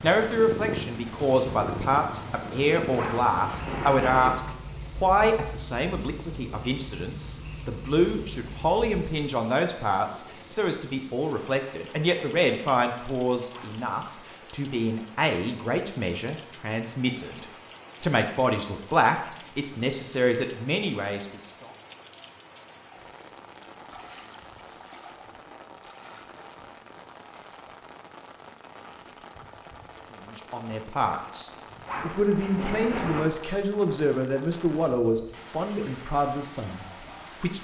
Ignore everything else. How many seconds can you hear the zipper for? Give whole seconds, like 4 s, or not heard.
3 s.